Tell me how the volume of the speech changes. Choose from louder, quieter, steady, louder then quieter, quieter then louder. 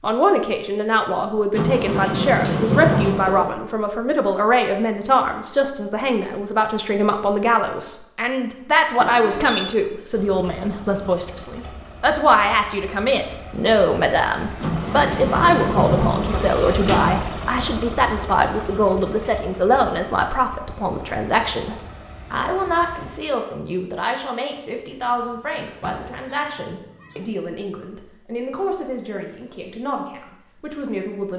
quieter.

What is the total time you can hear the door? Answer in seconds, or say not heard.
6 s.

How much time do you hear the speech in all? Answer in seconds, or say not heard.
31 s.